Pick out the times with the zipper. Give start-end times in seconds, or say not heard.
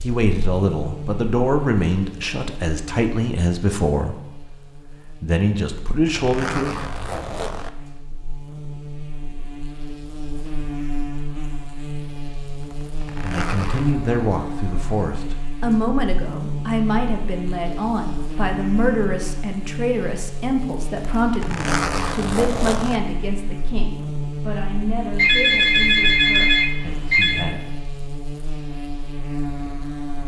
5.7-7.7, 12.6-14.0, 21.2-23.0.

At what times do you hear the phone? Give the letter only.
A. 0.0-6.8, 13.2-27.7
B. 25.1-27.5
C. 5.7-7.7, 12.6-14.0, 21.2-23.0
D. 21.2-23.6
B.